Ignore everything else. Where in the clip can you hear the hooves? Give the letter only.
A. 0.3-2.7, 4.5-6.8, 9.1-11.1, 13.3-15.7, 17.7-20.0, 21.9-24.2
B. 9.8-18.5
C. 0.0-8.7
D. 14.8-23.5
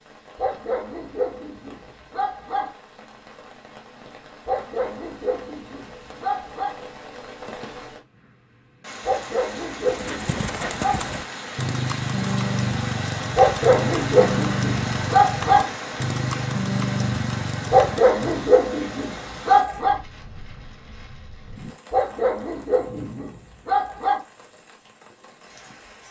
B.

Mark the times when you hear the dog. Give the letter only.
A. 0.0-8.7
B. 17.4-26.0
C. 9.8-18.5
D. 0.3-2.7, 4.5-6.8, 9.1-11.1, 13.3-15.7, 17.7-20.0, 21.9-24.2
D.